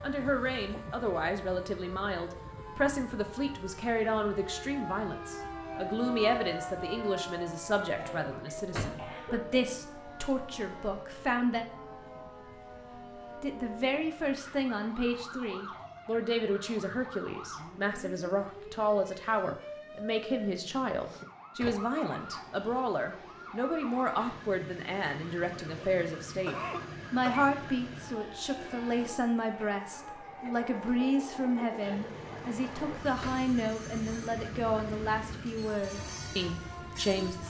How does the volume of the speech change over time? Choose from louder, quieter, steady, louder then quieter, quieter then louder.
steady.